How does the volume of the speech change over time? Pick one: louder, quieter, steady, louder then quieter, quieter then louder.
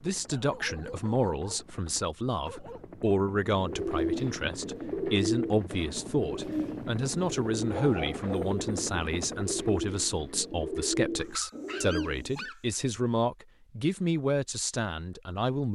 steady.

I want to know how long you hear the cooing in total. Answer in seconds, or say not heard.
9 s.